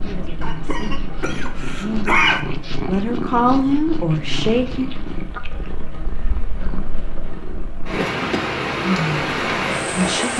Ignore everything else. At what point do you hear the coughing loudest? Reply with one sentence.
The loudest moment of the coughing is at 2 seconds.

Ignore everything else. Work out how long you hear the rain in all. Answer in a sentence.
The rain can be heard for 10 seconds in total.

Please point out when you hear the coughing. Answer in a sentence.
You can hear the coughing from 0.4 to 2.4 s and from 8.0 to 8.5 s.